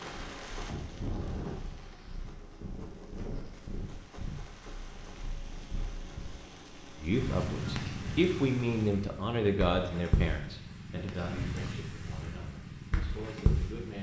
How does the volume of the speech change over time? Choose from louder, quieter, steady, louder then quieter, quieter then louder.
quieter.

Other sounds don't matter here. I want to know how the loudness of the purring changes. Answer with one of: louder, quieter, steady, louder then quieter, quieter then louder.
louder.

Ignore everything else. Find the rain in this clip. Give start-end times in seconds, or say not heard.
0.0-8.9.